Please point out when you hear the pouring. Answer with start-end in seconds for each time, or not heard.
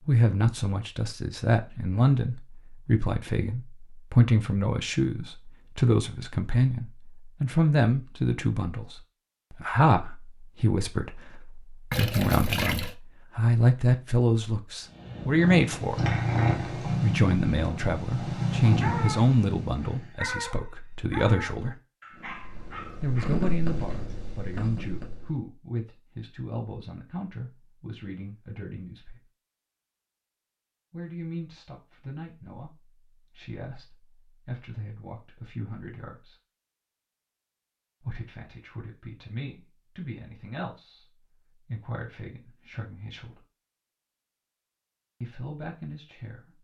11.9-12.9.